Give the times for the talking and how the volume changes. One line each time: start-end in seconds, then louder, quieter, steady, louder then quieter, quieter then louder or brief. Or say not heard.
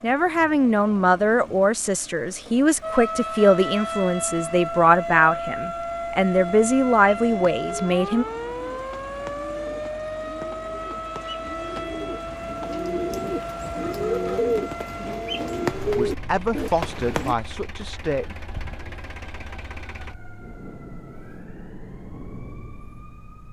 0.0-8.2 steady
15.9-18.4 brief.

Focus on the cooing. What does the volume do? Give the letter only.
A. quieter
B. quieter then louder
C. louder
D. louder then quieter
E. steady
C.